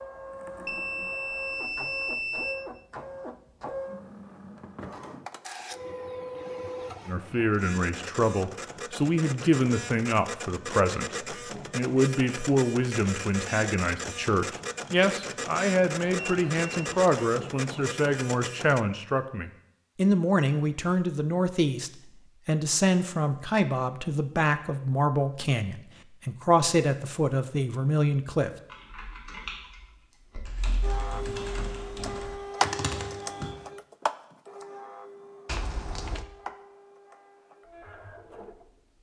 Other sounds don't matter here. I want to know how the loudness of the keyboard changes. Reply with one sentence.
The volume of the keyboard goes down, then up.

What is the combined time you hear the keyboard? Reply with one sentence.
You can hear the keyboard for 5 seconds altogether.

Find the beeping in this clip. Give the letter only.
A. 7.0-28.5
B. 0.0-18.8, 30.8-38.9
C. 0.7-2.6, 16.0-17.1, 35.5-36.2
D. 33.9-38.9
C.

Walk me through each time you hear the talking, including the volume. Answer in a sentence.
The talking can be heard from 7.0 to 28.5 s, at a steady volume.